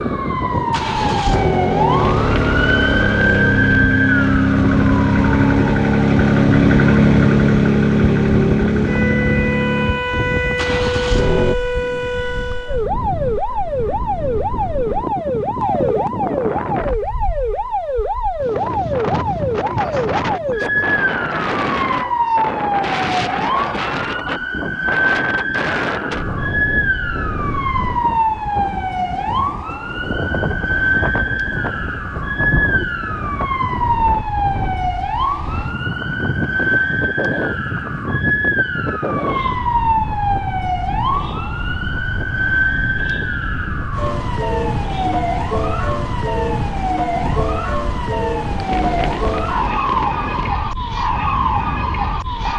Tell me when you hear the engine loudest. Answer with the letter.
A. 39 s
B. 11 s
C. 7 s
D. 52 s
C.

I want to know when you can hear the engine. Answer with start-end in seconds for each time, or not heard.
0.0-11.6.